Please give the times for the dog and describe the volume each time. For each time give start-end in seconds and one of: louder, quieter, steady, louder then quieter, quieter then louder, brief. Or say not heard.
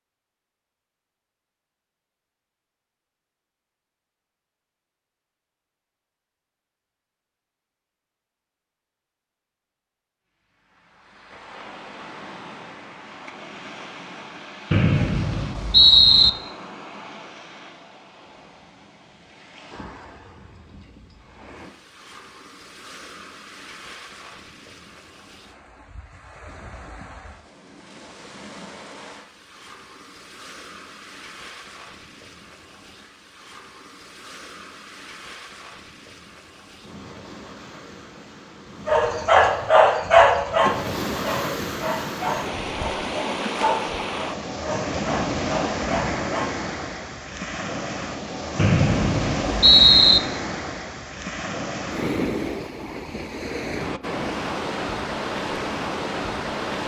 38.9-46.5 quieter.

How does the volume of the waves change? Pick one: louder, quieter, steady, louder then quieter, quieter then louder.
louder.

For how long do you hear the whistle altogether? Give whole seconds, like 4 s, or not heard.
3 s.